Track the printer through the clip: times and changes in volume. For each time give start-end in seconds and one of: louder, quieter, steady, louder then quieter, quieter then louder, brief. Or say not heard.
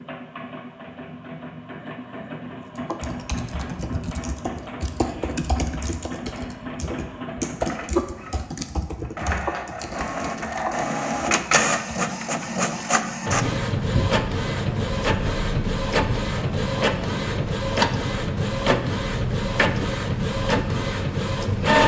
0.0-21.8 louder.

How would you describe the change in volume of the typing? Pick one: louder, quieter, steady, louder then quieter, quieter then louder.
louder then quieter.